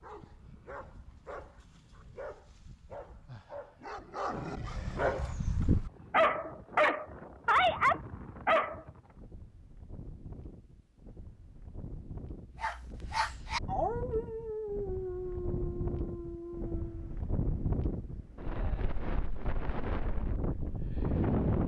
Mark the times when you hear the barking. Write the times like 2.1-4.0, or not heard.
0.0-8.8, 12.6-17.2.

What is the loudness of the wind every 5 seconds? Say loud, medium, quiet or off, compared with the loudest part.
off, quiet, quiet, medium, loud.